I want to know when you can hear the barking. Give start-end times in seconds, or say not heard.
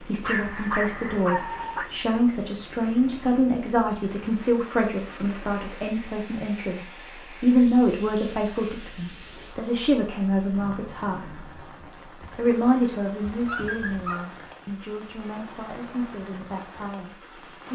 0.2-1.9, 13.2-14.2.